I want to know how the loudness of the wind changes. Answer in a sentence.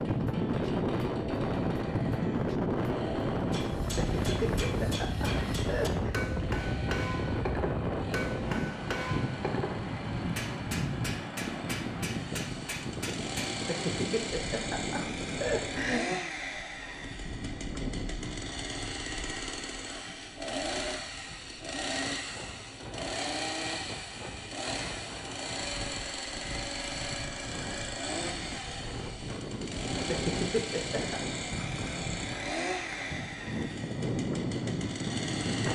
The loudness of the wind goes down, then up.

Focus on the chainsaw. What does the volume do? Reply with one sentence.
The volume of the chainsaw goes up.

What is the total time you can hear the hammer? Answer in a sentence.
The hammer can be heard for 10 seconds in total.